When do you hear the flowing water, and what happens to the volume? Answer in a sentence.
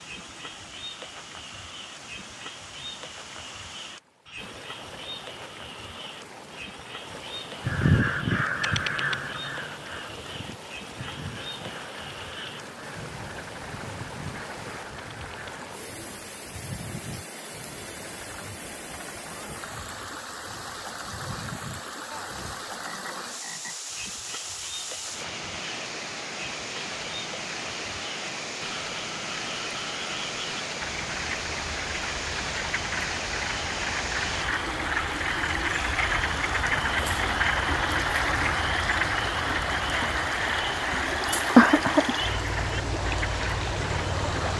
You can hear the flowing water from 0.0 to 44.5 s, getting louder.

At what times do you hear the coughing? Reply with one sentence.
You can hear the coughing from 40.9 to 42.1 s.